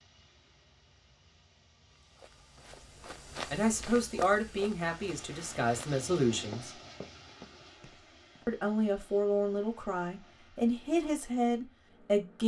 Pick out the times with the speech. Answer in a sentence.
You can hear the speech from 3.5 to 6.7 s and from 8.4 to 12.4 s.